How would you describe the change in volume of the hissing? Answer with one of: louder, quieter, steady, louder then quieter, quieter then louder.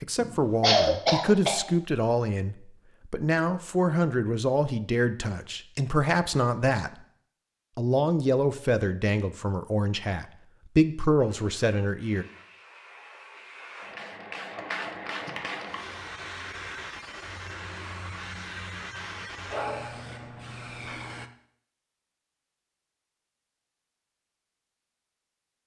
louder.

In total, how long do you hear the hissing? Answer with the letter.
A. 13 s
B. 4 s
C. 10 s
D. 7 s
C.